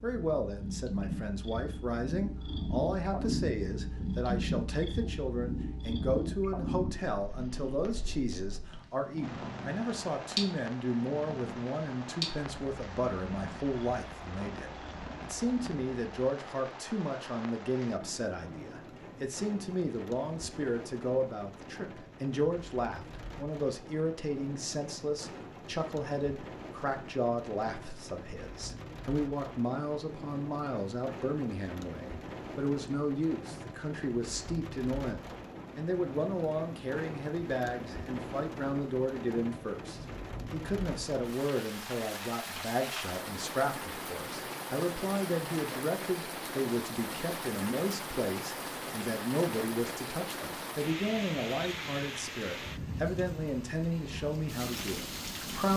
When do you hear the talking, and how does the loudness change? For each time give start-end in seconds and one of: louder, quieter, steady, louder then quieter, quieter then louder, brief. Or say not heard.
0.0-55.7 steady.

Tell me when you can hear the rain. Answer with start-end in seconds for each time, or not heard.
9.2-55.7.